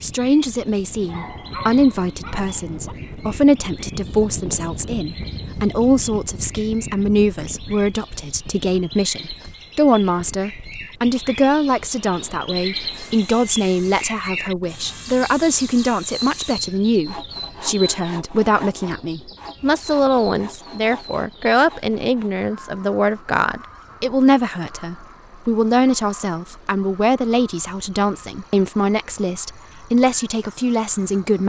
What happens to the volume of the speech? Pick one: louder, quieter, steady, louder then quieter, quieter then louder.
steady.